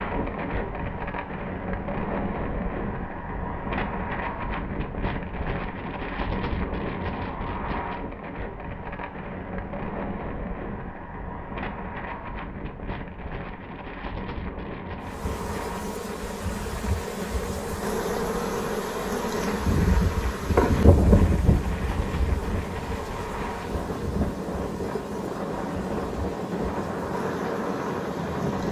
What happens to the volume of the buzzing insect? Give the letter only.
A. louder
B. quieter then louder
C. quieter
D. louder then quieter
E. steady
D.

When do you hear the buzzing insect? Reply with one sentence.
You can hear the buzzing insect from 15.1 to 28.6 s.